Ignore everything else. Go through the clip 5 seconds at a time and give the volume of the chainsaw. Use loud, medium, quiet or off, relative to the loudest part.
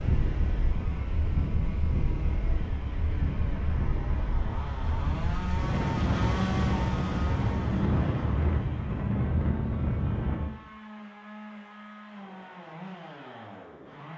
medium, loud, medium.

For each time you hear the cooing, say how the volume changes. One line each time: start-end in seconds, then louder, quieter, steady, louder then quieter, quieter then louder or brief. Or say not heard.
not heard.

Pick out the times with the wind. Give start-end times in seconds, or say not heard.
0.0-10.5.